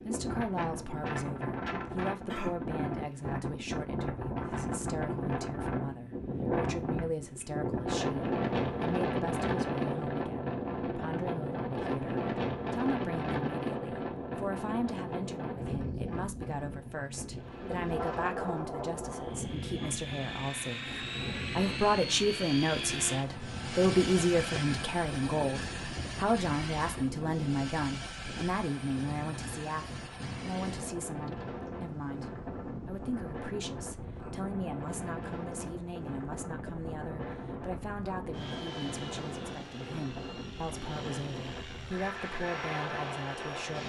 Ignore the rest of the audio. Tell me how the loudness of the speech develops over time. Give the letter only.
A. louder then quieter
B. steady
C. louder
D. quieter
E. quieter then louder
A.